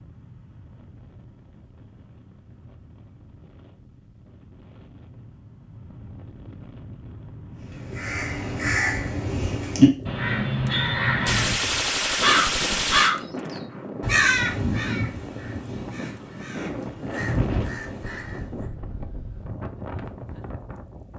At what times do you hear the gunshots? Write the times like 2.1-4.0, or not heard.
10.7-13.6.